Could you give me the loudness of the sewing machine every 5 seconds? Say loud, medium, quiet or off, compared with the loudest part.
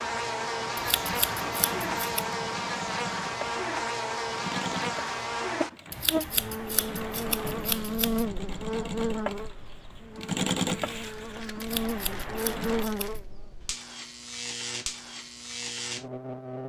medium, medium, loud, off.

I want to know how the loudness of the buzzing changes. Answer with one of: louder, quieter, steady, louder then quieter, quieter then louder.
quieter.